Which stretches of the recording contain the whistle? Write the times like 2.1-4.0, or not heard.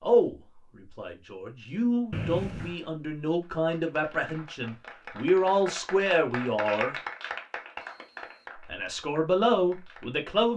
2.1-2.8, 7.9-8.6.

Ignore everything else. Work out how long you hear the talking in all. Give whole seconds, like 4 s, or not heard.
9 s.